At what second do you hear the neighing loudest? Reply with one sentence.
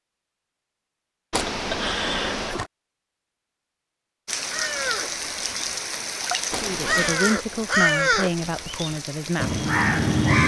The loudest moment of the neighing is at 2 seconds.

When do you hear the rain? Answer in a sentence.
The rain can be heard from 4.2 to 10.4 s.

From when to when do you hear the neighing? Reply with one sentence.
You can hear the neighing from 1.3 to 2.7 s and from 6.5 to 7.2 s.